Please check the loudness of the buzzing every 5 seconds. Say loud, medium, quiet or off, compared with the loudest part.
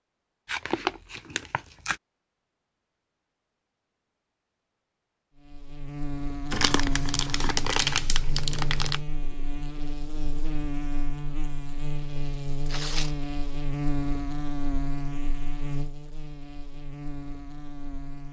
off, loud, loud, medium.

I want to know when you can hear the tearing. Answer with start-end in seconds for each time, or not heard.
0.5-1.9, 6.5-9.0, 12.7-13.2.